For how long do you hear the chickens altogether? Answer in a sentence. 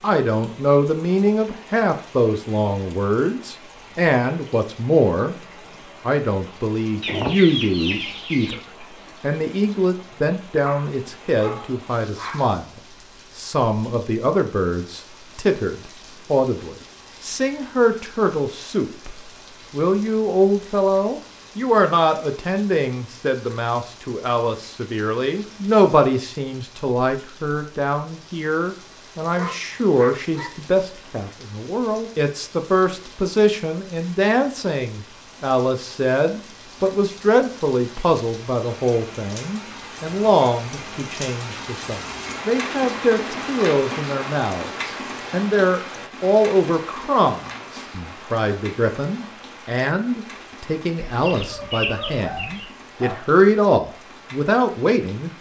The chickens can be heard for 3 seconds in total.